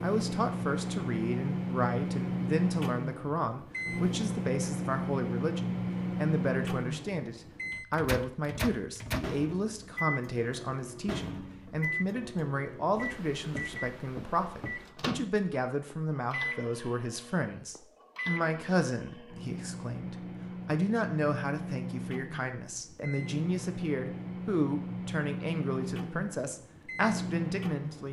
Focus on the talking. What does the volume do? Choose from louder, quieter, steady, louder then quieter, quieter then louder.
steady.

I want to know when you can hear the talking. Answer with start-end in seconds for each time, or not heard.
0.0-28.0.